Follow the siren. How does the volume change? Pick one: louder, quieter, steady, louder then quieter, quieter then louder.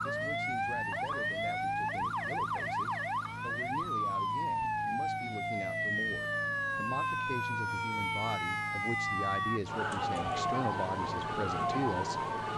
steady.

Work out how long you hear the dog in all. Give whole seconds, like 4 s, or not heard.
not heard.